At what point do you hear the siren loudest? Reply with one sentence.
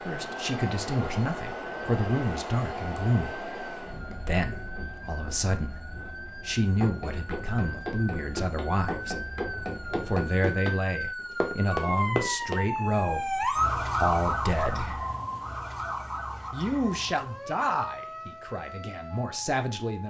The loudest moment of the siren is at 14 seconds.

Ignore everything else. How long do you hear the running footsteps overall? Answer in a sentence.
You can hear the running footsteps for 6 seconds altogether.